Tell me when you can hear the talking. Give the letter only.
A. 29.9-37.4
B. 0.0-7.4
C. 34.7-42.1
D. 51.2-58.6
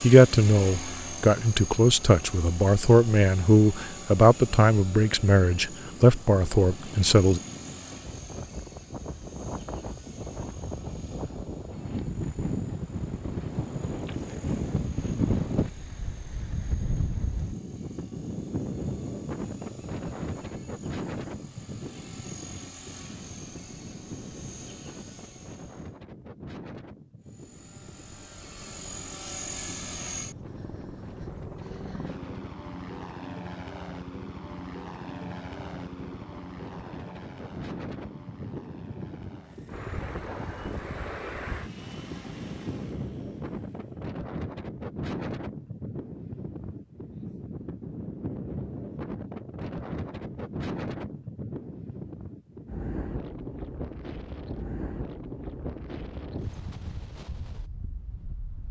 B.